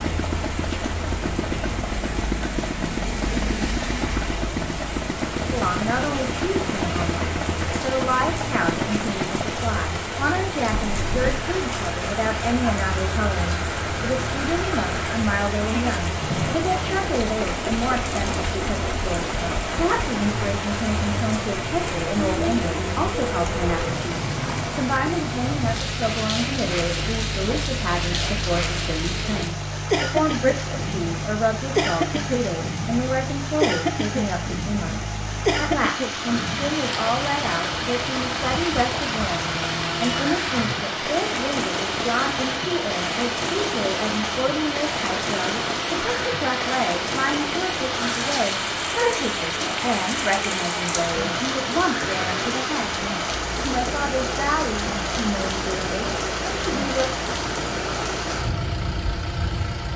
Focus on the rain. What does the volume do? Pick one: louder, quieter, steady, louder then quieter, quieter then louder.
steady.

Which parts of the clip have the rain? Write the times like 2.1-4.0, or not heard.
0.0-59.9.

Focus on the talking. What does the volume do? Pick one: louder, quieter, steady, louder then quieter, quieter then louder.
steady.